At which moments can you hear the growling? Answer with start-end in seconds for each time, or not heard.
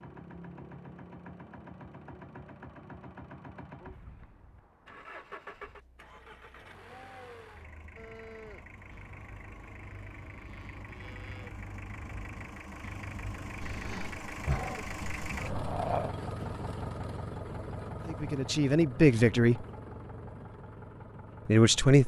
13.6-16.1.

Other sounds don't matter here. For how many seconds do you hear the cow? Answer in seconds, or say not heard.
6 s.